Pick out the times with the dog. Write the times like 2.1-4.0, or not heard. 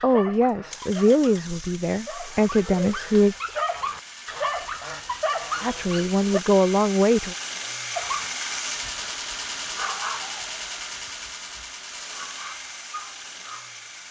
0.0-6.4, 8.0-13.8.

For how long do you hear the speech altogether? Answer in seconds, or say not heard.
5 s.